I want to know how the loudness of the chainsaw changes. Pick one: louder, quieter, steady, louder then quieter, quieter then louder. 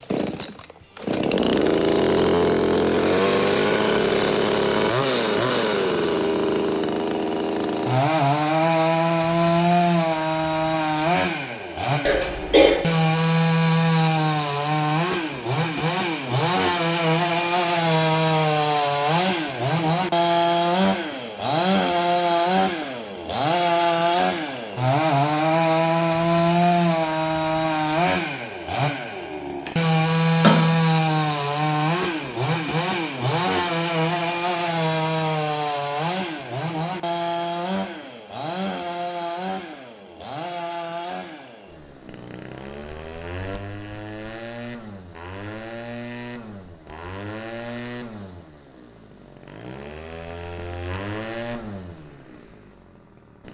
quieter.